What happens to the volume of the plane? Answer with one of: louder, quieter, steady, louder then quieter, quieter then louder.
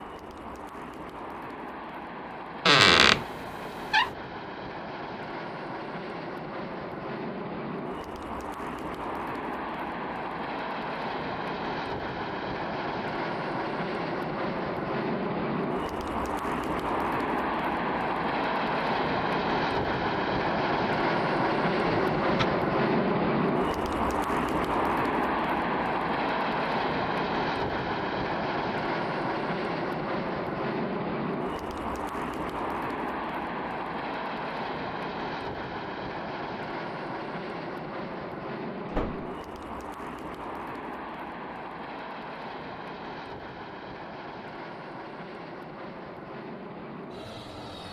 louder then quieter.